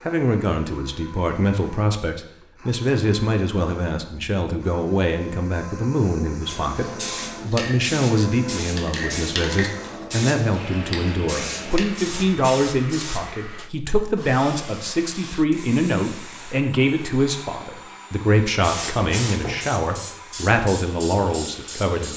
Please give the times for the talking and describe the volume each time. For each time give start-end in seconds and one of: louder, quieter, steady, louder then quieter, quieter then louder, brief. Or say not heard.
0.1-22.1 steady.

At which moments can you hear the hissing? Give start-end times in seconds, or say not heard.
6.5-13.3, 18.6-22.1.